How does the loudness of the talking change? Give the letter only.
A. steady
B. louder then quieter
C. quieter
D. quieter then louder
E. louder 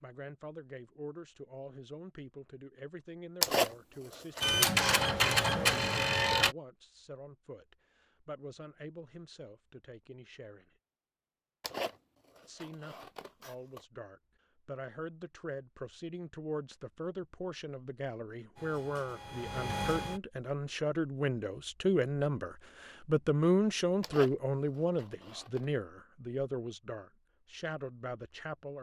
E.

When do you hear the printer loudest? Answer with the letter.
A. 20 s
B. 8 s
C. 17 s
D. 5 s
D.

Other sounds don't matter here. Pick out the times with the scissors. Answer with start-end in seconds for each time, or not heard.
3.4-4.5, 11.6-13.8, 24.0-25.6.